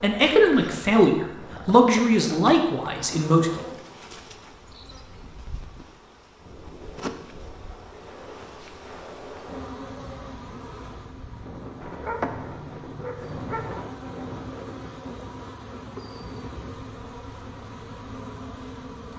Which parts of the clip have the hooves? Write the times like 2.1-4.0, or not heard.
not heard.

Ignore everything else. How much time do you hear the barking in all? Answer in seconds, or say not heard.
2 s.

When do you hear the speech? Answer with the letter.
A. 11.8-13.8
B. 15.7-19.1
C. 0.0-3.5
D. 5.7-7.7
C.